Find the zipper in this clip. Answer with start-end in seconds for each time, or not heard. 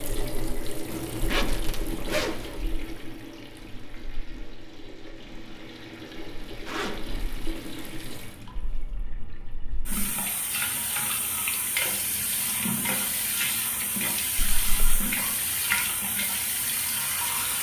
0.9-2.5, 6.7-7.2, 14.3-15.1.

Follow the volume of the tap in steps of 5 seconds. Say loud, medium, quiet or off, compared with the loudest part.
medium, medium, loud, loud.